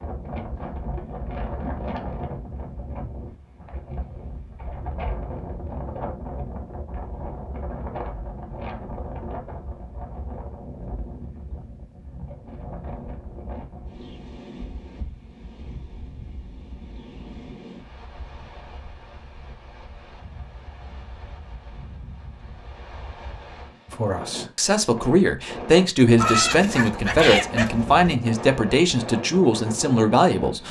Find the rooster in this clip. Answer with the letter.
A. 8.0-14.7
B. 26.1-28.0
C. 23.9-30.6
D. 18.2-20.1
B.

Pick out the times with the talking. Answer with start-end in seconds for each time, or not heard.
23.9-30.6.